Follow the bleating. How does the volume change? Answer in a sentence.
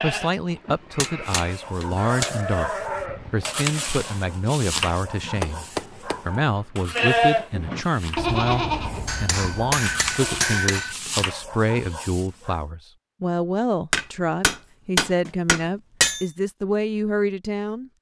The volume of the bleating goes up, then down.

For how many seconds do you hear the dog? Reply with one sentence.
The dog can be heard for 11 seconds in total.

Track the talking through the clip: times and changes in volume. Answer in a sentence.
You can hear the talking from 0.0 to 17.9 s, at a steady volume.